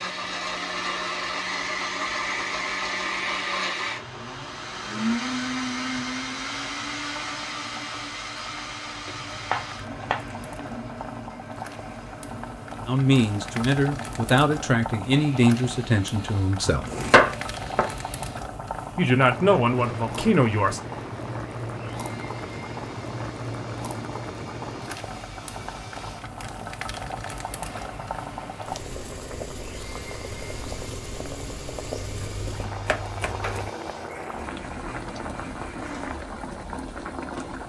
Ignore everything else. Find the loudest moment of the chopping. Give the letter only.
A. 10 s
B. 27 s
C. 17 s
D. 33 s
C.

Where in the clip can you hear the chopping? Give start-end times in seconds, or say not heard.
9.1-10.4, 16.6-18.5, 31.9-33.7.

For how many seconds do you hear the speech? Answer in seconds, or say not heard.
6 s.